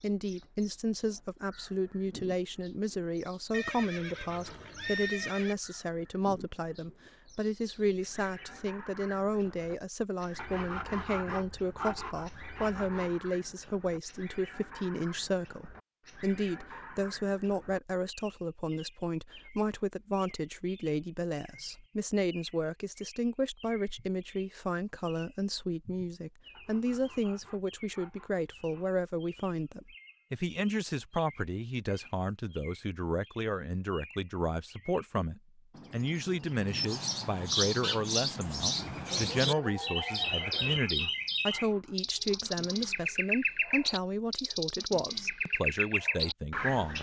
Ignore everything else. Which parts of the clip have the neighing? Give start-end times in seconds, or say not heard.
3.5-5.5, 38.8-40.8.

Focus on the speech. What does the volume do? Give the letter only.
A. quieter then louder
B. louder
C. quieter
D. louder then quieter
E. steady
E.